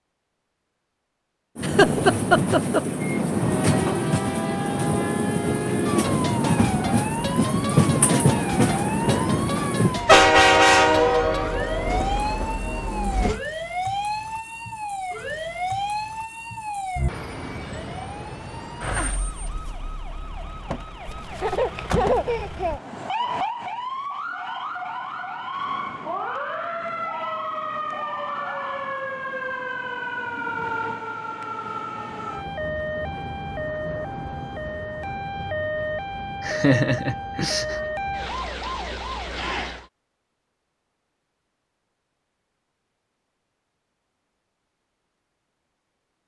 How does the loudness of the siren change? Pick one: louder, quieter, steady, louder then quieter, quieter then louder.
steady.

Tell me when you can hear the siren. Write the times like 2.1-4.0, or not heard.
3.4-39.9.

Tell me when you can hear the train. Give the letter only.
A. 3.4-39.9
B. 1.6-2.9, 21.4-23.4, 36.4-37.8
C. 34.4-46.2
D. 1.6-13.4
D.